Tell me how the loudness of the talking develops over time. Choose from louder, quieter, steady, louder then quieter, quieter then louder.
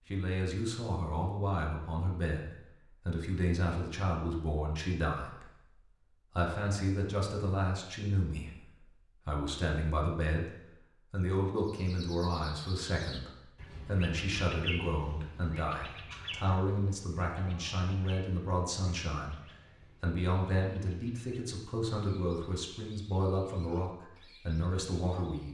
steady.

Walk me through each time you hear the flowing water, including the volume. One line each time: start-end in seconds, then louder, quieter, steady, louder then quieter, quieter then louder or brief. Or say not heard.
not heard.